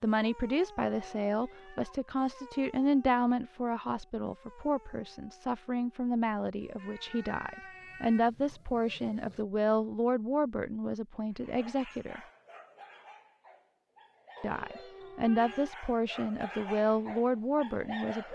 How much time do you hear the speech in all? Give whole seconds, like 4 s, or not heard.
16 s.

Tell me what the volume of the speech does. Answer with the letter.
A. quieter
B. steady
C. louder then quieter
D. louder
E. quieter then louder
B.